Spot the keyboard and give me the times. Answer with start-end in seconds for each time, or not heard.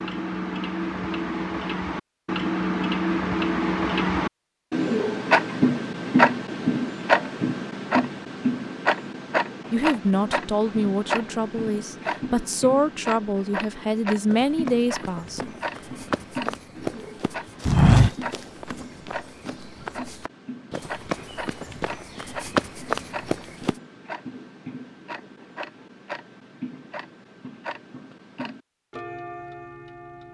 not heard.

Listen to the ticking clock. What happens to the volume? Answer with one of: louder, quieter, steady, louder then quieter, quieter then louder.
quieter.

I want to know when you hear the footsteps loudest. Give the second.
18 s.